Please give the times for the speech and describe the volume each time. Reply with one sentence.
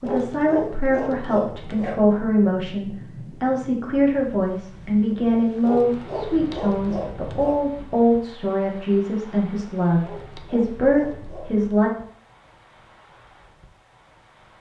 You can hear the speech from 0.0 to 11.9 s, at a steady volume.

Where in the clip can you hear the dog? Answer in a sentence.
The dog can be heard from 0.0 to 2.0 s, from 5.7 to 7.7 s and from 10.0 to 11.7 s.